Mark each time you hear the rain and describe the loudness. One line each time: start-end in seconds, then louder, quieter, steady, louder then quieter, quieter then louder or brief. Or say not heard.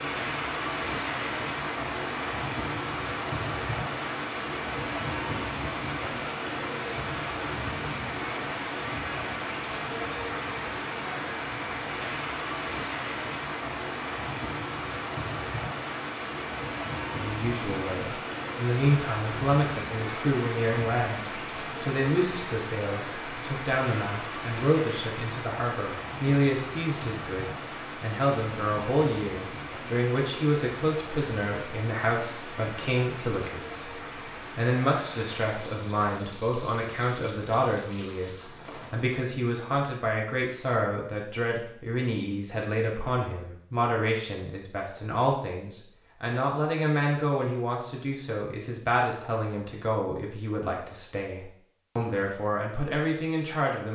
0.0-39.3 quieter.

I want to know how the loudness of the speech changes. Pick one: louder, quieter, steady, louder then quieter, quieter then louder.
steady.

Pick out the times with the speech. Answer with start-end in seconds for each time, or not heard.
17.2-53.9.